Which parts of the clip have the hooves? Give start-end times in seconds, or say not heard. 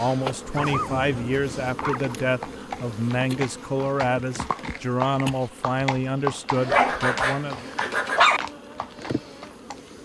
1.8-9.9.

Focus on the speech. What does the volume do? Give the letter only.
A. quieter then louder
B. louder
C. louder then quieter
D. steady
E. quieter
D.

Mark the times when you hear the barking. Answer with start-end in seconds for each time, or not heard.
0.6-2.1, 6.5-8.4.